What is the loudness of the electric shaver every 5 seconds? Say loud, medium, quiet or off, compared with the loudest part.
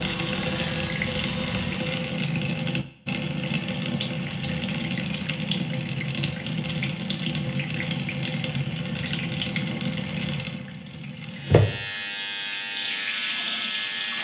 loud, off, loud.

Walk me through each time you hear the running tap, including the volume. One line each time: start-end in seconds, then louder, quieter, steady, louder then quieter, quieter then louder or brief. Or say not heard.
0.0-14.1 steady.